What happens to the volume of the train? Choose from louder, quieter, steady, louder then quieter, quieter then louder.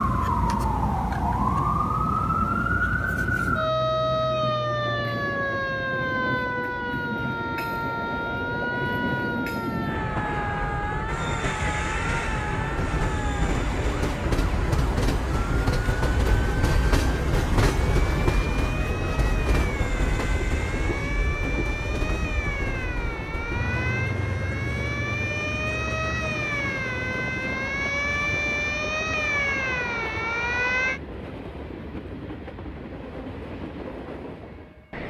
louder then quieter.